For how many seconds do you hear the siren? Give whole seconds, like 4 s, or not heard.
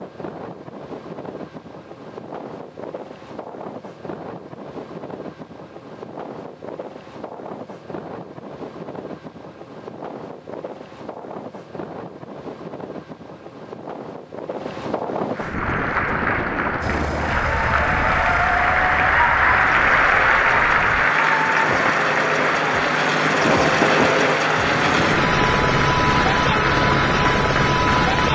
not heard.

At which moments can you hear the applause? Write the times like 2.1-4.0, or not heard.
15.3-28.3.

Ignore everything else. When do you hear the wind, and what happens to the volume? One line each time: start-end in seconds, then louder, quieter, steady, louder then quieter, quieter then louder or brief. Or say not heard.
0.0-28.3 louder.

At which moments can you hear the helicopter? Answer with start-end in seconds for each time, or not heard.
16.8-28.3.